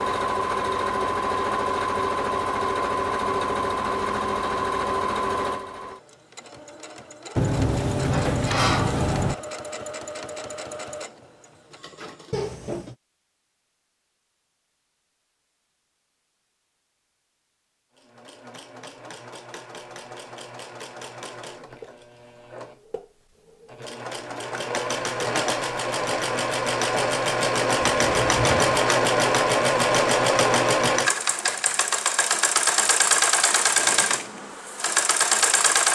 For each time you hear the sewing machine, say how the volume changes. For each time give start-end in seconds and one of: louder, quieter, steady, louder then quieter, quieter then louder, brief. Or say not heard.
0.0-12.5 quieter
17.9-35.9 louder.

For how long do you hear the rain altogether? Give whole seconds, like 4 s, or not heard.
not heard.